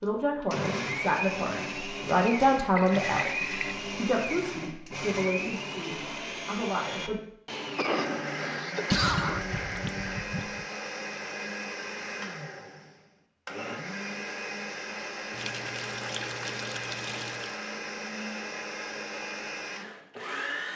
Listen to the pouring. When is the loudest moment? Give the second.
9 s.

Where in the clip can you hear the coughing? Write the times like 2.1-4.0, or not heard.
7.8-9.4.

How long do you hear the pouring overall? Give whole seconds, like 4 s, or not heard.
5 s.